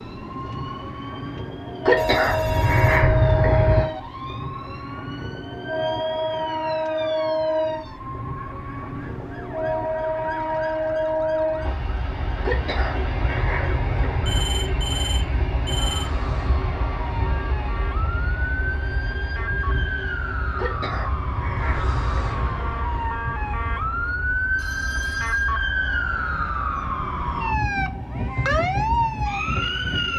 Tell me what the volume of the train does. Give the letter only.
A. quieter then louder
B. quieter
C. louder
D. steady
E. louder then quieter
B.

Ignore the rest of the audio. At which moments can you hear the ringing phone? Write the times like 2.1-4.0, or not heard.
1.9-3.0, 14.2-16.1, 24.6-25.5.